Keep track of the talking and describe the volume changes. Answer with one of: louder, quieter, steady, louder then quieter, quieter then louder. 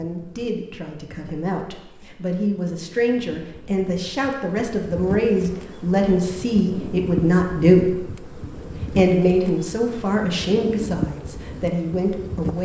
louder then quieter.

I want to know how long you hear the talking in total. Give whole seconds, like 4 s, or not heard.
12 s.